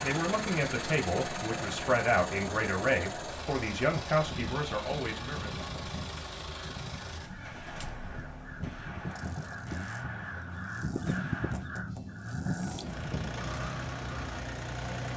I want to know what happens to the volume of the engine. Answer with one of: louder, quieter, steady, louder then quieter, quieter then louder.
quieter then louder.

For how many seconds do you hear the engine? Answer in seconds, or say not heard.
15 s.